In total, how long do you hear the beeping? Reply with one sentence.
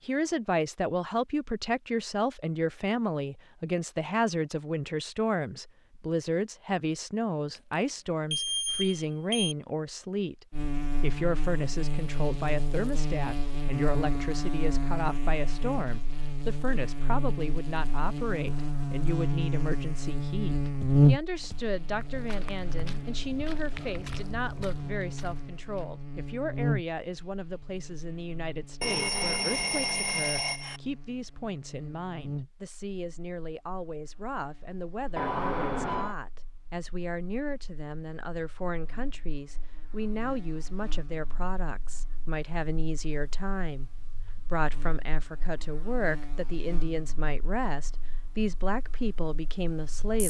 The beeping can be heard for 5 seconds in total.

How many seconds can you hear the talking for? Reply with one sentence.
The talking can be heard for 50 seconds in total.